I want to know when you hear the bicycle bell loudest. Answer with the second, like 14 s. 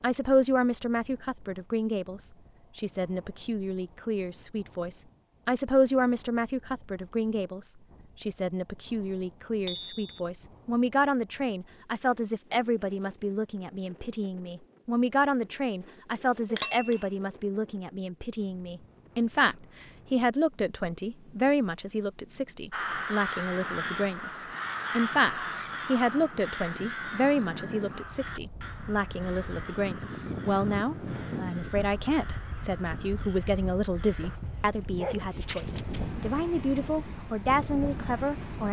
17 s.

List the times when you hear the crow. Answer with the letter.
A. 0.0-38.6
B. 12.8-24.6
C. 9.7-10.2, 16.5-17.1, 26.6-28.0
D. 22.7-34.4
D.